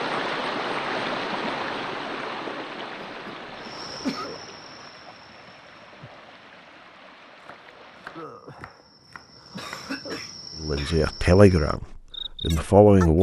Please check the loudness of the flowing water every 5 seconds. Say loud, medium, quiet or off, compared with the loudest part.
loud, quiet, off.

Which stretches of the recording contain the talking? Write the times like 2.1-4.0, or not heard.
10.6-13.1.